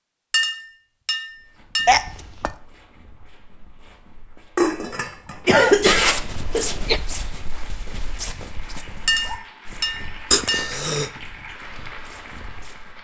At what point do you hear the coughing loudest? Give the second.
6 s.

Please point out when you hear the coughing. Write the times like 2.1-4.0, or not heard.
1.9-2.5, 5.5-7.0, 10.3-11.1.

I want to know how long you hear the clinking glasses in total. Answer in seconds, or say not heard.
5 s.